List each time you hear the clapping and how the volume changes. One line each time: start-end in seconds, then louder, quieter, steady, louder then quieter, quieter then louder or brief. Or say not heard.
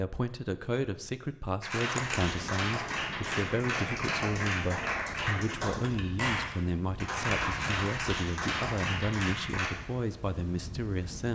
1.6-9.7 steady.